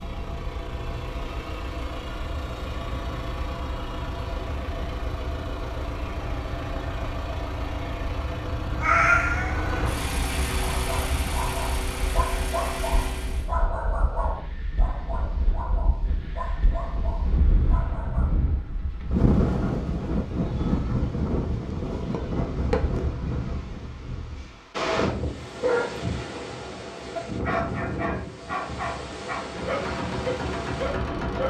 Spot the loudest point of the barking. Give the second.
26 s.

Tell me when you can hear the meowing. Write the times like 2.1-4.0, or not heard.
8.8-9.8.